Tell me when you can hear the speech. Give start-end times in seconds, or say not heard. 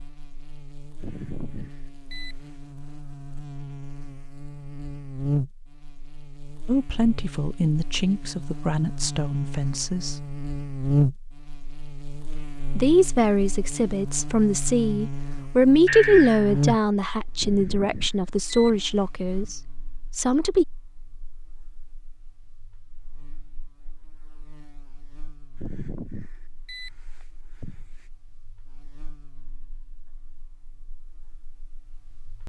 6.7-10.2, 12.8-20.6.